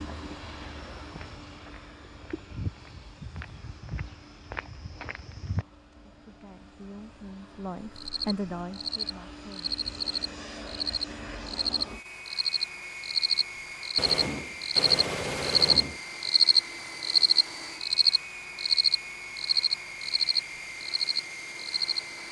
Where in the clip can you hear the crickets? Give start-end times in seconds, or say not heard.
8.0-22.0.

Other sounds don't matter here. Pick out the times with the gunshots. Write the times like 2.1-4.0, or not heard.
13.9-16.0.